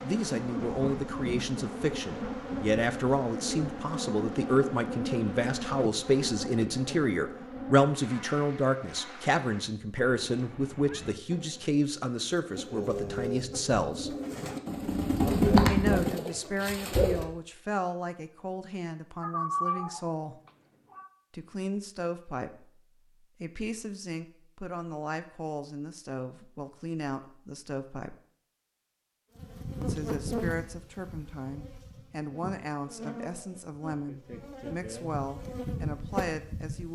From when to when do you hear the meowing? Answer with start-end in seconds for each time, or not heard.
9.9-11.2, 19.2-21.1.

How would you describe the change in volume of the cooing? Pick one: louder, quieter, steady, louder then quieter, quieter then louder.
louder then quieter.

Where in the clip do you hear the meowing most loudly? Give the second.
20 s.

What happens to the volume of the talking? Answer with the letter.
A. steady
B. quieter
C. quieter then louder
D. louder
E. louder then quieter
B.